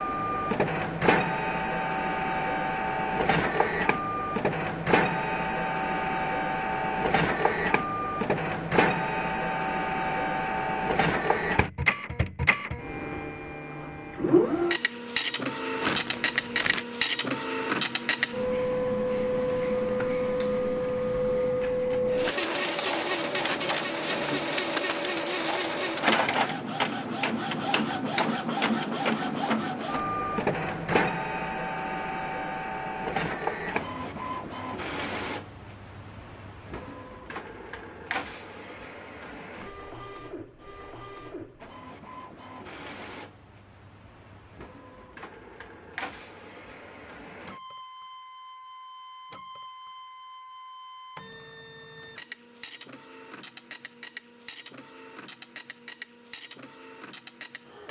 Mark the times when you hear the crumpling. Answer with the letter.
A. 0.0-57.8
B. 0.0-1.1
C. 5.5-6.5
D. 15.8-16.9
D.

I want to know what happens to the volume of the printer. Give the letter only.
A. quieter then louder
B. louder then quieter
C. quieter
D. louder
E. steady
C.